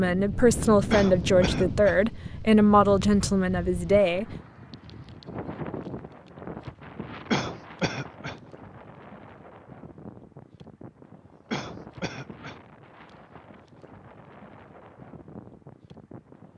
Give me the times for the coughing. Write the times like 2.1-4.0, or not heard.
0.9-2.0, 7.3-8.4, 11.5-12.6.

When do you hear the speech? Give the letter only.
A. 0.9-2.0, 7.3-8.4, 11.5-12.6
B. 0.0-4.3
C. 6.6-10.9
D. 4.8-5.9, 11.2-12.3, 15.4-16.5
B.